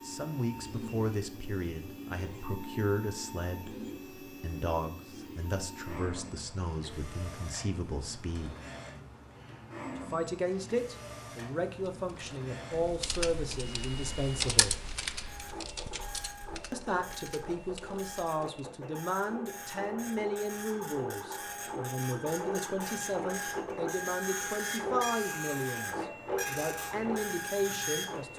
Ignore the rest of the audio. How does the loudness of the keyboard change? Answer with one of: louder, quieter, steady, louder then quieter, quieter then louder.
louder then quieter.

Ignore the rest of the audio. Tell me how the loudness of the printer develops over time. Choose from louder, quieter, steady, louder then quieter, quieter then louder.
louder.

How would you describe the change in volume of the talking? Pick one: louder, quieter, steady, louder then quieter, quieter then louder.
steady.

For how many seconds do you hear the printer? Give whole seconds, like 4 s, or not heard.
28 s.